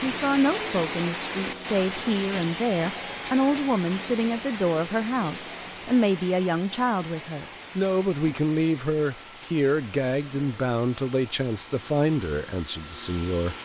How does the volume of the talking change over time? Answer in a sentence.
The volume of the talking stays about the same.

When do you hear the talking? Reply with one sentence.
The talking can be heard from 0.0 to 13.6 s.